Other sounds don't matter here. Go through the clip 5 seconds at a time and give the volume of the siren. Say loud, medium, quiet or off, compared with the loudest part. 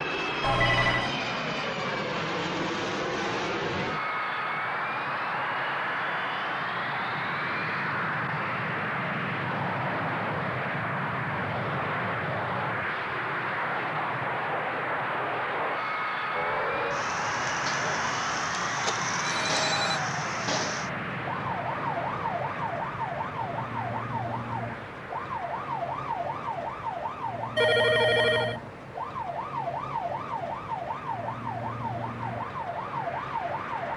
off, off, off, loud, loud, loud, loud.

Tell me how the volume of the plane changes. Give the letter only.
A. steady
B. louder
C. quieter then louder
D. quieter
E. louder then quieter
D.